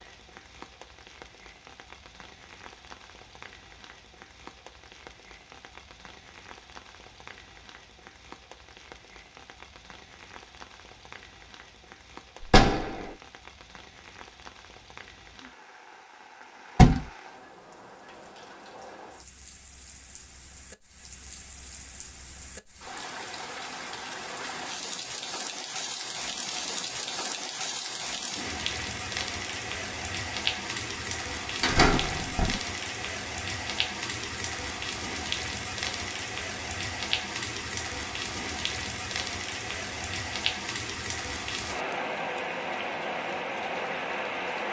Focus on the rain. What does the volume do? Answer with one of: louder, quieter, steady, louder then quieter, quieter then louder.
louder.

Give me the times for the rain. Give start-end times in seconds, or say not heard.
0.0-44.6.